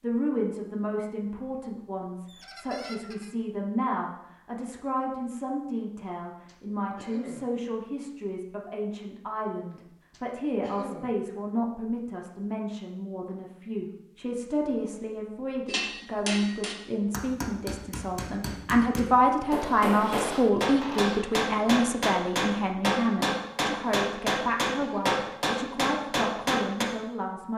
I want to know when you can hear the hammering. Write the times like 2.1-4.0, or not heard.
15.7-26.9.